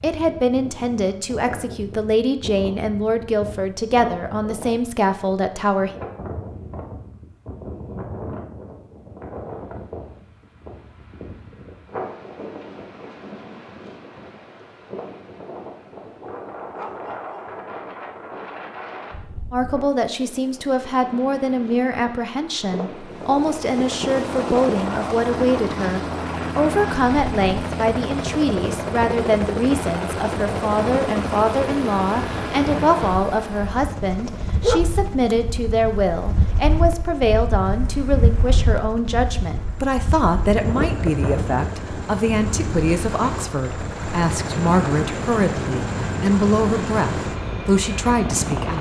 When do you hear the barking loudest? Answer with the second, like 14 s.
35 s.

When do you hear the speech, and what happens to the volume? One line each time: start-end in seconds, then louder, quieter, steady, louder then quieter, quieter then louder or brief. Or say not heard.
0.0-5.9 steady
19.5-48.7 steady.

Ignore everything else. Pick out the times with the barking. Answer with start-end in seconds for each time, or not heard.
16.2-17.6, 34.6-35.4.